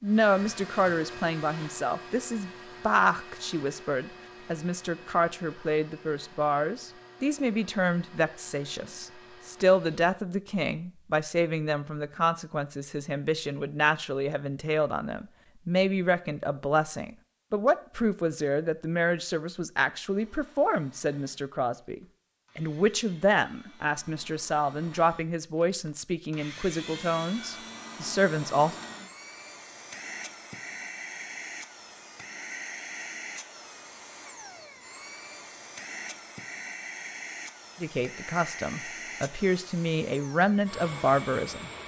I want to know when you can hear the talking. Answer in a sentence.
The talking can be heard from 0.0 to 28.8 s and from 37.8 to 41.7 s.